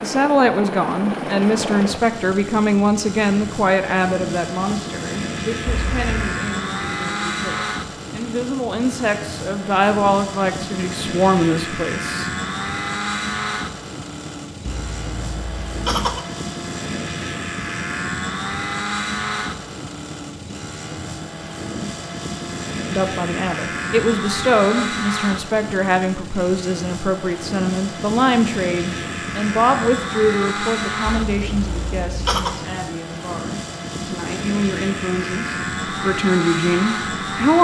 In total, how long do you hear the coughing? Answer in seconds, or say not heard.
4 s.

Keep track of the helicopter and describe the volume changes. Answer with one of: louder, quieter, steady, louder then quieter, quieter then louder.
steady.